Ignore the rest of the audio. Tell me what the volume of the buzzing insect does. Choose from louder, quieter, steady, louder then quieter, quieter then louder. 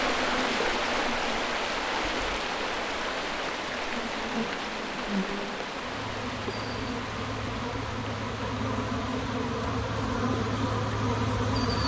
louder.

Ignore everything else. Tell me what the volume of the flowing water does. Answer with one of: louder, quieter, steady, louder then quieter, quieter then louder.
quieter.